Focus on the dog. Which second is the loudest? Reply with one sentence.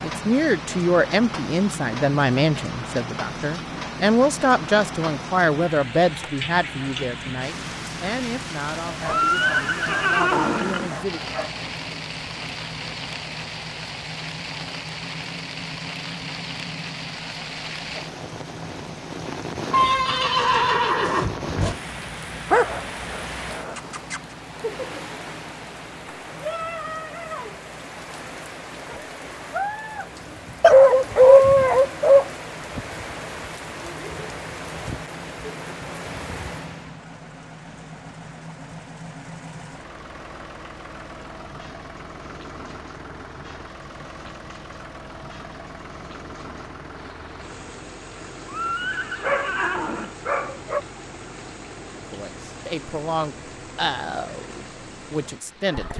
The volume of the dog peaks at 31 seconds.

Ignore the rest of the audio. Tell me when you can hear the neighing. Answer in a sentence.
The neighing can be heard from 9.1 to 11.1 s, from 19.7 to 21.8 s and from 48.5 to 50.1 s.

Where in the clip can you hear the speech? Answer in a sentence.
The speech can be heard from 0.0 to 11.2 s and from 52.0 to 55.9 s.